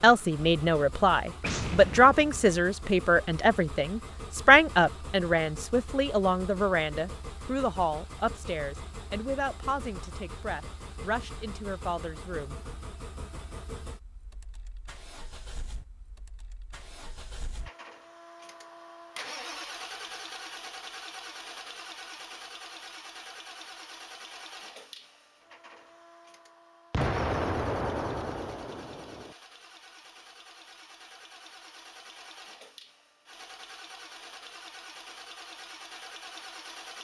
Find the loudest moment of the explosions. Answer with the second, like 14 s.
27 s.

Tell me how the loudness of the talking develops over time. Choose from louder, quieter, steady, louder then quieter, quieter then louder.
quieter.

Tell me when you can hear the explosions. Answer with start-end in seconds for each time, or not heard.
1.4-2.5, 26.9-29.4.